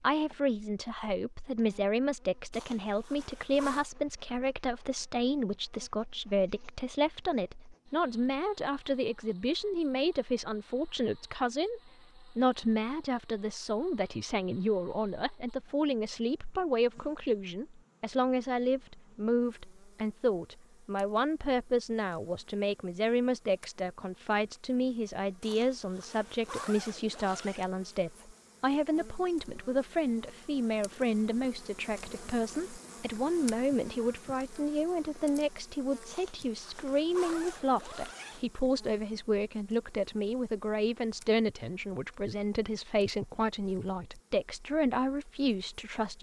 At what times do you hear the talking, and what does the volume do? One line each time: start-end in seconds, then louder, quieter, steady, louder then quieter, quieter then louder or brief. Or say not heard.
0.0-46.1 steady.